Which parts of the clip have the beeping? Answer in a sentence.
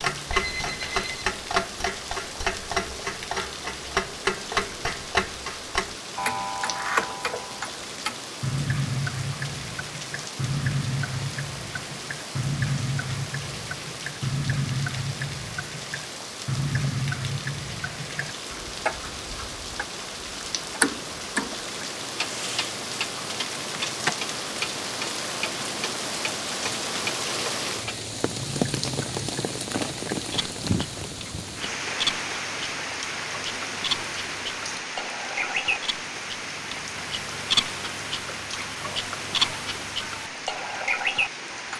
You can hear the beeping from 0.3 to 1.3 s.